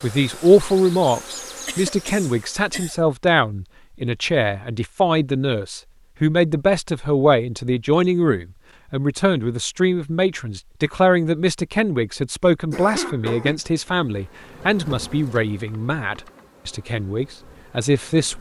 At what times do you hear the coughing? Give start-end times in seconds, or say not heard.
1.6-3.0, 12.7-13.6.